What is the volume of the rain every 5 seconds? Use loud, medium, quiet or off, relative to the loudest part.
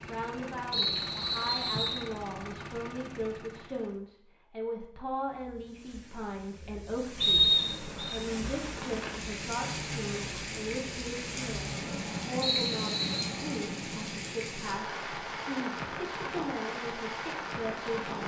off, loud, loud, loud.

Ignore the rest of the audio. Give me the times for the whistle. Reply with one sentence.
You can hear the whistle from 0.7 to 2.0 s, from 7.2 to 8.2 s and from 12.4 to 13.2 s.